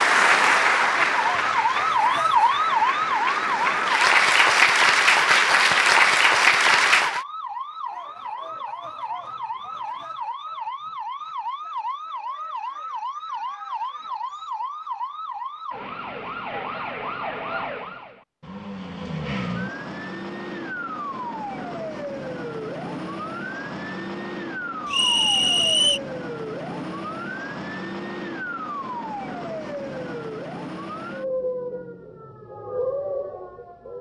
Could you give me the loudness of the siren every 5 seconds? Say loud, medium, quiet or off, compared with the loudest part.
loud, medium, medium, medium, medium, medium, medium.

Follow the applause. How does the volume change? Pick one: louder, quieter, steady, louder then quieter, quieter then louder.
quieter then louder.